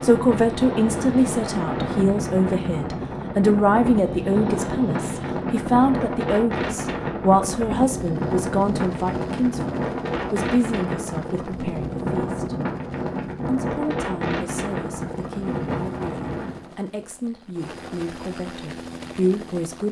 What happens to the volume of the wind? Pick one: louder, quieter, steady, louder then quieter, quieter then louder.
steady.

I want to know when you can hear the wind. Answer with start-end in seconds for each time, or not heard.
0.0-16.8.